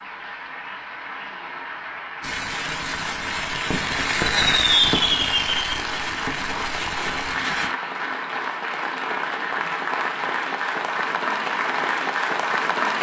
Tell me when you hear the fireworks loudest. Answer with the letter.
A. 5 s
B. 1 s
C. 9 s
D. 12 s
A.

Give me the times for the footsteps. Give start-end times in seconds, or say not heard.
not heard.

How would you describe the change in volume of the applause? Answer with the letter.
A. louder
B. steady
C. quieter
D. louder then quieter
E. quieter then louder
A.